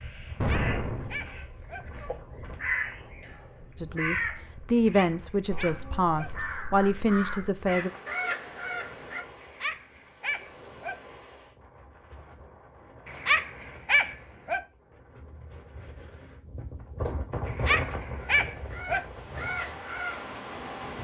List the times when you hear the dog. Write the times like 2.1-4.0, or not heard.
0.3-1.8, 4.9-6.3, 9.4-10.9, 13.1-14.6, 17.4-19.0.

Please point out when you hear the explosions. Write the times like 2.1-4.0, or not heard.
0.4-1.4.